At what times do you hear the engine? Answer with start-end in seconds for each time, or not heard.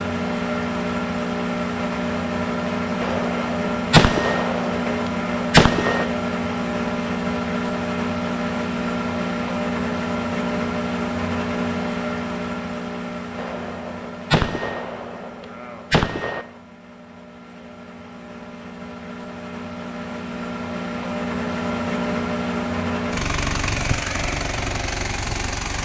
0.0-25.8.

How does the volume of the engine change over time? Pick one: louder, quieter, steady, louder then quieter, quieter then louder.
quieter then louder.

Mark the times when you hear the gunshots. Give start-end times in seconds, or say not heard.
3.0-6.0, 13.3-16.4.